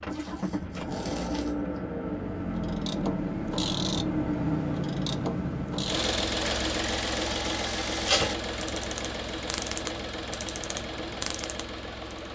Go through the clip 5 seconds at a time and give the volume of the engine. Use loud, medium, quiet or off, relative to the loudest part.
loud, loud, medium.